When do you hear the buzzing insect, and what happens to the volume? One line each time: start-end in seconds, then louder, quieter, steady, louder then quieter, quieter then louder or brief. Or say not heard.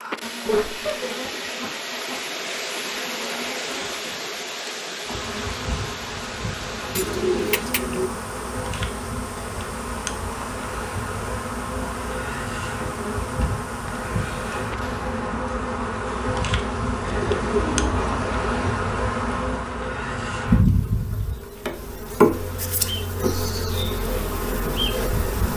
0.0-25.5 louder.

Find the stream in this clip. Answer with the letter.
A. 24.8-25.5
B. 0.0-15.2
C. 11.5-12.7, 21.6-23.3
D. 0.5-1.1
B.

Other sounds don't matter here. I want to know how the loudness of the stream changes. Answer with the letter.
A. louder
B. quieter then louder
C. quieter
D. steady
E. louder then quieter
C.